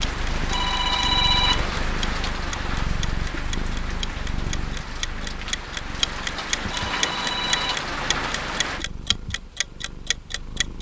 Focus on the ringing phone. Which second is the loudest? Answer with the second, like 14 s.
1 s.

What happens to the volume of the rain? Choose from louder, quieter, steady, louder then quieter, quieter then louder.
quieter then louder.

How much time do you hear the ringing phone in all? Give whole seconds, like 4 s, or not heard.
2 s.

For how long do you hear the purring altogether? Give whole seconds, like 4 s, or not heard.
11 s.